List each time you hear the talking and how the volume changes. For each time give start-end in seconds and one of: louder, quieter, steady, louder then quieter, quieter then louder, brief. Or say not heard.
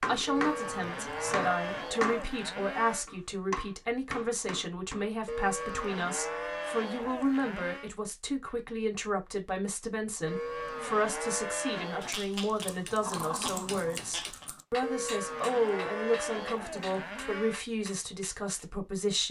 0.1-19.2 steady.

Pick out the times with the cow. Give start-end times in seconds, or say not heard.
0.2-3.0, 5.2-7.9, 10.2-12.2, 14.8-17.6.